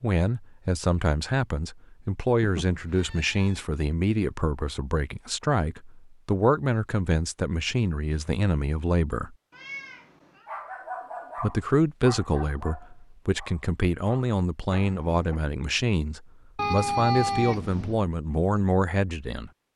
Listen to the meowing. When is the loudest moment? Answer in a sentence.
The volume of the meowing peaks at 17 seconds.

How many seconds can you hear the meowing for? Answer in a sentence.
The meowing can be heard for 4 seconds in total.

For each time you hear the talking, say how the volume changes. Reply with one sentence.
You can hear the talking from 0.0 to 9.3 s, at a steady volume; and from 11.3 to 19.5 s, at a steady volume.